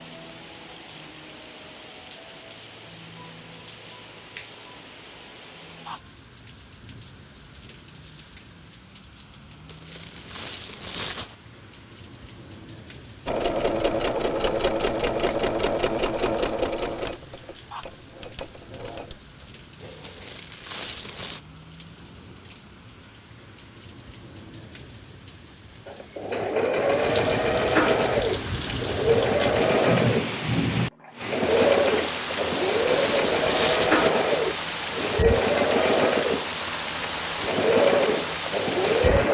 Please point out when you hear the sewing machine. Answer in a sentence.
The sewing machine can be heard from 13.2 to 20.4 s and from 25.9 to 39.3 s.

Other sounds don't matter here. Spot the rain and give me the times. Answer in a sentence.
You can hear the rain from 0.0 to 39.3 s.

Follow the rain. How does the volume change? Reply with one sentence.
The volume of the rain goes up.